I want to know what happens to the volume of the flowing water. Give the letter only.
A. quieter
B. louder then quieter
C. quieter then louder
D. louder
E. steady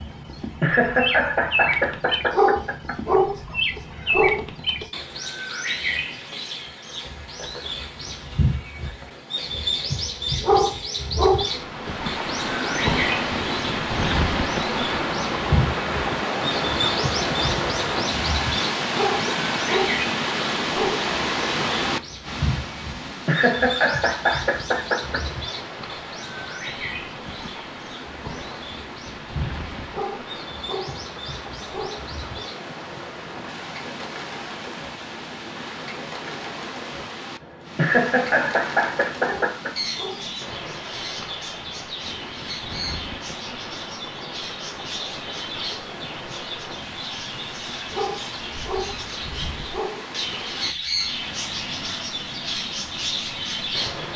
A.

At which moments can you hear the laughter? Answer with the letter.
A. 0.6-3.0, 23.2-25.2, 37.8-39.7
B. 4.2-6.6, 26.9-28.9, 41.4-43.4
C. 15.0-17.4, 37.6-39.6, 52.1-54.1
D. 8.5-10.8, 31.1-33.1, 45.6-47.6
A.